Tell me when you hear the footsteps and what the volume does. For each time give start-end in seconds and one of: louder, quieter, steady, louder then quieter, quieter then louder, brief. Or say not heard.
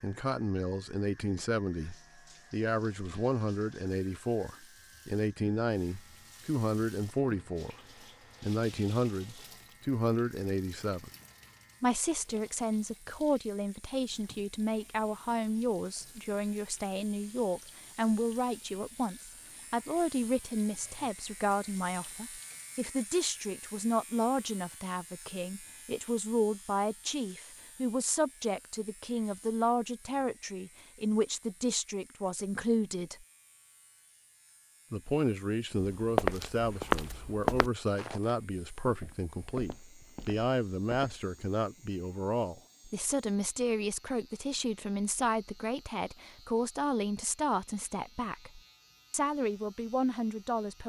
35.8-41.2 quieter.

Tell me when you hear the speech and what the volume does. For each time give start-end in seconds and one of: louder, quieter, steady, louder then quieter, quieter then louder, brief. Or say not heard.
0.0-7.8 steady
8.4-11.1 brief
11.8-33.2 steady
34.9-50.8 steady.